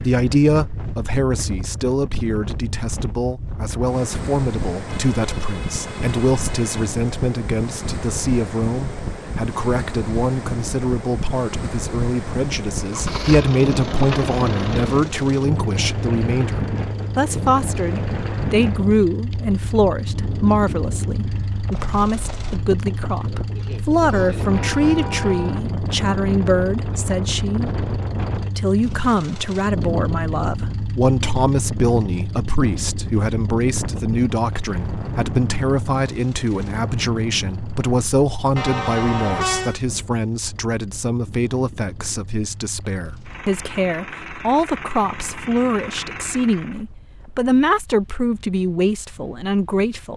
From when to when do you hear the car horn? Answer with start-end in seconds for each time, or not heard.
4.8-6.9, 24.1-25.6, 38.5-39.8.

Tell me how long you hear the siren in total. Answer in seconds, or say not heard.
not heard.